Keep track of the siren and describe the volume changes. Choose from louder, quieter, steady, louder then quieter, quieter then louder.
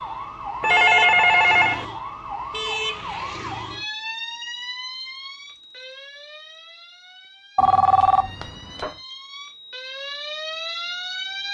quieter then louder.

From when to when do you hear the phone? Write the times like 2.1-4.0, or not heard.
0.6-1.9, 7.5-8.9.